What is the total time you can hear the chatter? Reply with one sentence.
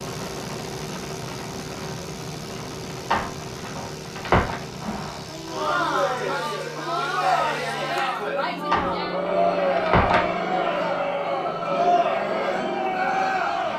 The chatter can be heard for 9 seconds in total.